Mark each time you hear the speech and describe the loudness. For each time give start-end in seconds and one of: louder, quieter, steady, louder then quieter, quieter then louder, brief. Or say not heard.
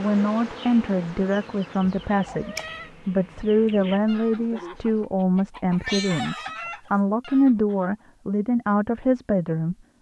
0.0-9.8 steady.